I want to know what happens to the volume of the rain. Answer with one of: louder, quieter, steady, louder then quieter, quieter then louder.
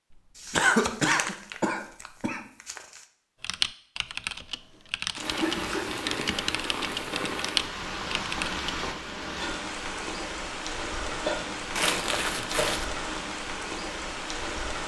steady.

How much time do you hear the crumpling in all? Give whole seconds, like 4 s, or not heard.
5 s.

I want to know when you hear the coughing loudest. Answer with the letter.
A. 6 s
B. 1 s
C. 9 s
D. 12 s
B.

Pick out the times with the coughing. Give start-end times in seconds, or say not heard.
0.5-2.4, 5.3-6.5, 11.1-12.9.